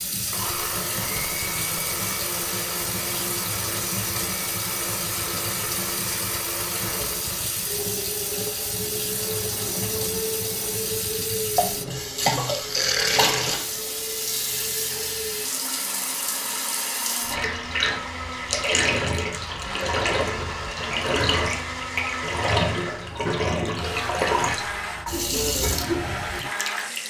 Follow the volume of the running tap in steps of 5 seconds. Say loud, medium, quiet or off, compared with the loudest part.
medium, medium, loud, loud, loud, loud.